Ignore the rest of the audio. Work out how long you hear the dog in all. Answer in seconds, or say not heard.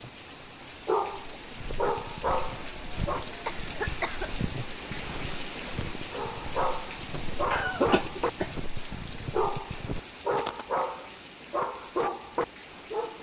9 s.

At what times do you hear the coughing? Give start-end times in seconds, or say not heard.
2.5-4.3, 7.5-8.5.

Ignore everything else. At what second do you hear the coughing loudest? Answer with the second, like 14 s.
8 s.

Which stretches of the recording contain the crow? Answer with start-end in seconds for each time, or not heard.
not heard.